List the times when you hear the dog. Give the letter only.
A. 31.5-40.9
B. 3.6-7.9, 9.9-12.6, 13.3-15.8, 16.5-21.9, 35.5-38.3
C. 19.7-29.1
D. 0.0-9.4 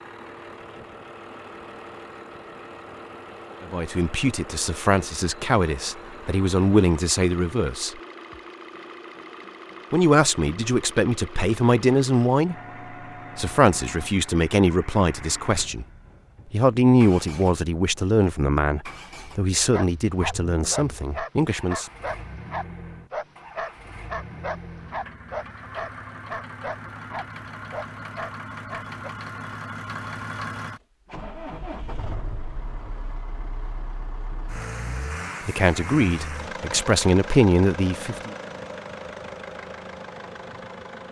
C.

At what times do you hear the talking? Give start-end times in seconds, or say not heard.
3.6-7.9, 9.9-12.6, 13.3-15.8, 16.5-21.9, 35.5-38.3.